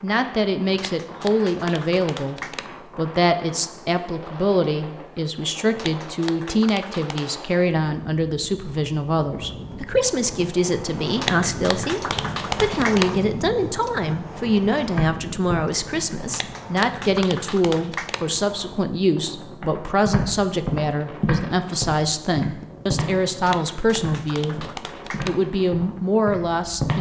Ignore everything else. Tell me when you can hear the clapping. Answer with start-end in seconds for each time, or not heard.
0.7-2.7, 5.8-7.3, 11.2-13.1, 16.2-18.2, 23.4-25.4.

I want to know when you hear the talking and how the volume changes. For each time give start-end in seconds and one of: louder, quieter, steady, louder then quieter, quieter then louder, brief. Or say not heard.
0.0-26.9 steady.